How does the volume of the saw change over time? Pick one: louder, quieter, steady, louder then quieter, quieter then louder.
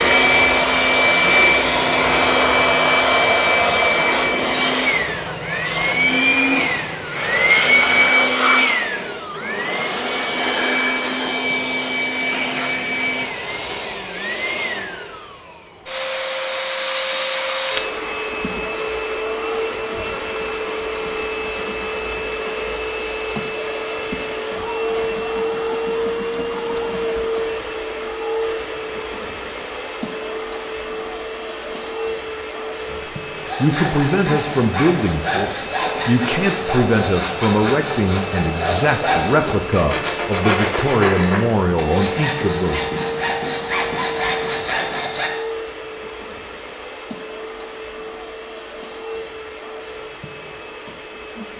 steady.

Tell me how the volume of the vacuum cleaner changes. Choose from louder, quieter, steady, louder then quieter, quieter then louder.
quieter.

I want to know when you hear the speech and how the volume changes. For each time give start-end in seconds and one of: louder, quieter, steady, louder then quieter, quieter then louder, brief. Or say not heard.
32.9-43.0 steady.